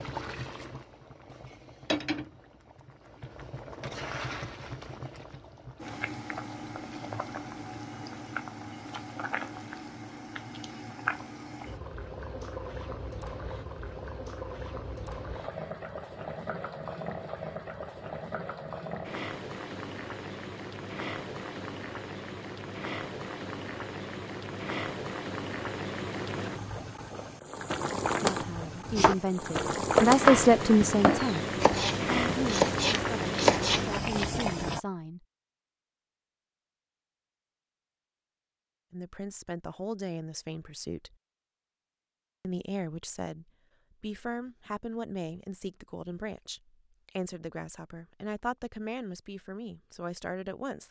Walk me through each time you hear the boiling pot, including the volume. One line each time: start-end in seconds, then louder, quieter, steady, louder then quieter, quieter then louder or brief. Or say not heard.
0.0-34.8 louder.